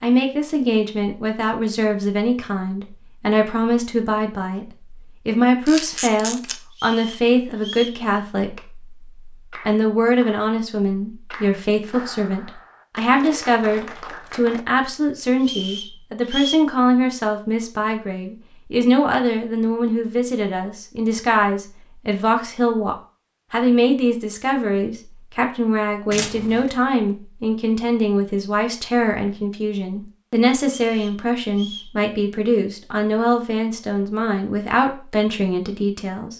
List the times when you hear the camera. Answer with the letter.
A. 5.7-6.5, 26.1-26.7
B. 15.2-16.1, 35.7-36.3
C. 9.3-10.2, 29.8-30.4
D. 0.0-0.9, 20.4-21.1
A.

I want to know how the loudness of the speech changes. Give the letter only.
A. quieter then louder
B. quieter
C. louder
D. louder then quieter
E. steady
E.